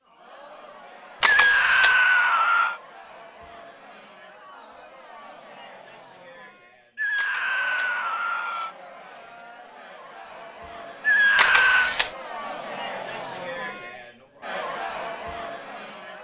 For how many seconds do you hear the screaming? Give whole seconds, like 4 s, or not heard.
4 s.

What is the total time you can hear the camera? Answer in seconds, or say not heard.
2 s.